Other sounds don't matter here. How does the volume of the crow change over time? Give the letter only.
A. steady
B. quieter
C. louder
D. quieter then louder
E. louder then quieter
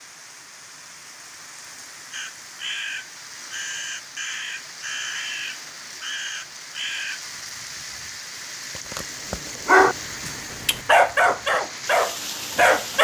A.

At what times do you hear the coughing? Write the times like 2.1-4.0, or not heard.
not heard.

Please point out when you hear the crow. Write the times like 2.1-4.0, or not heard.
2.1-7.2.